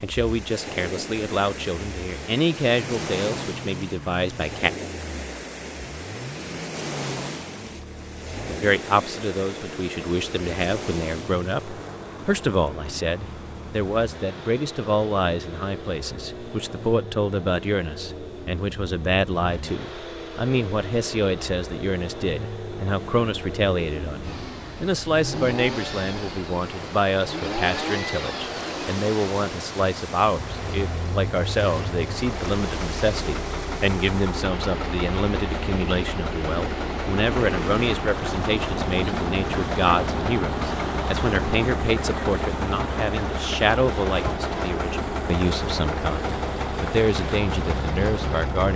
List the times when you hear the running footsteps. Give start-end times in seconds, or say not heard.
not heard.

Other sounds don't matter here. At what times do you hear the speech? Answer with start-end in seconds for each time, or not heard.
0.0-4.7, 8.4-48.7.